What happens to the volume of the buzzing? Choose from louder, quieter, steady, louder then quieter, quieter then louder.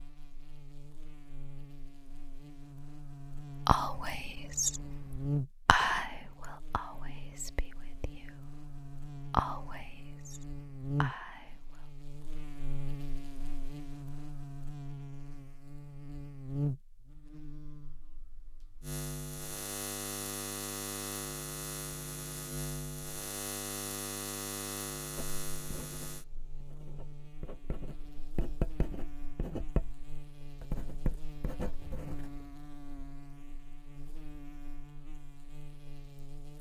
quieter.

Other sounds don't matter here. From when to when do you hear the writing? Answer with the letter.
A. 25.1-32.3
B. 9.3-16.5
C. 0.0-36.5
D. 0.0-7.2
A.